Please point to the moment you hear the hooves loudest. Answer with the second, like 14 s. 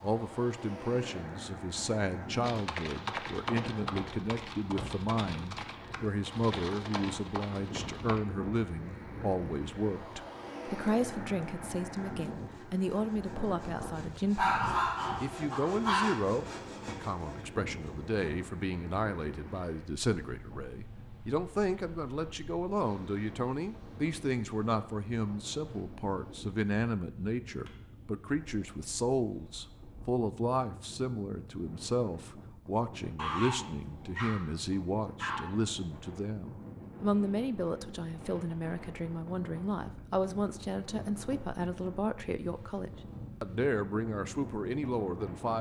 3 s.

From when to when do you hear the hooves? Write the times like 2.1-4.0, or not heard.
2.4-8.2.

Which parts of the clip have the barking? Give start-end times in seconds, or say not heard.
14.3-16.2, 33.1-35.5.